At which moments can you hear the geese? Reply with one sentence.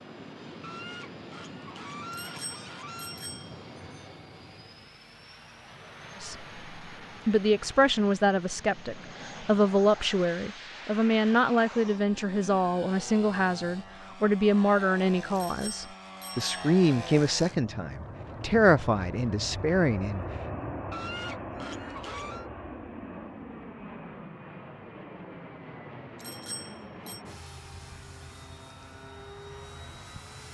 You can hear the geese from 0.6 to 3.2 s and from 20.9 to 22.5 s.